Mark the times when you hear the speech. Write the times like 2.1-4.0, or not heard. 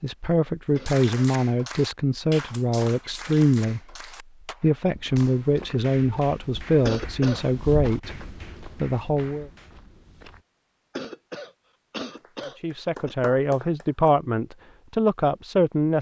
0.0-4.0, 4.6-9.5, 12.6-15.9.